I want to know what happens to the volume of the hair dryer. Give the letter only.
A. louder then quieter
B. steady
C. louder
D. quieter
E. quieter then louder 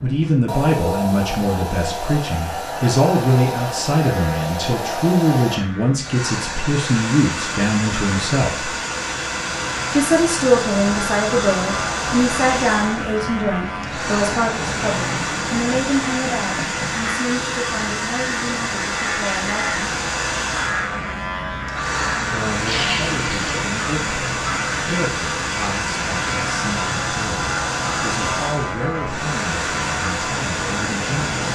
B.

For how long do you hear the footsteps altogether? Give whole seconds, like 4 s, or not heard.
not heard.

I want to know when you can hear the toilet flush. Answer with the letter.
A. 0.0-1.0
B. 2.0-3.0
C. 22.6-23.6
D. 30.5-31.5
C.